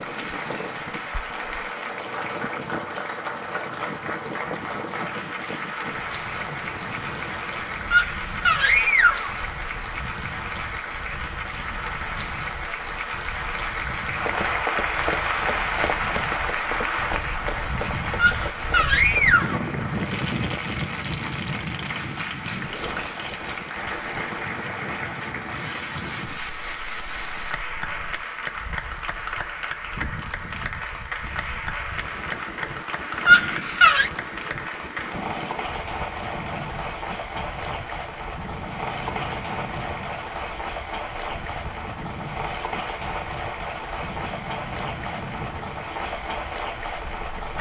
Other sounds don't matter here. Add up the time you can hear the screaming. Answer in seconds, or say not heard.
4 s.